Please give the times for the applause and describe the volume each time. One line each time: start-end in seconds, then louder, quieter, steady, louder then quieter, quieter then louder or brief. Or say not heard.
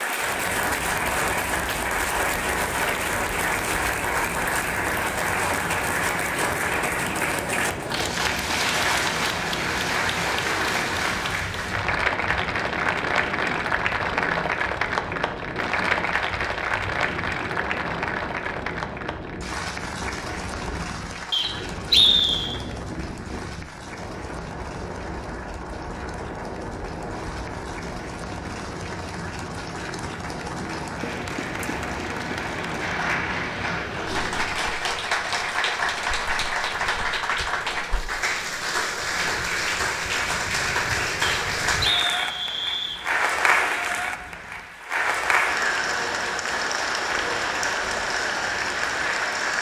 0.0-49.5 quieter then louder.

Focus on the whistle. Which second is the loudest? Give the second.
22 s.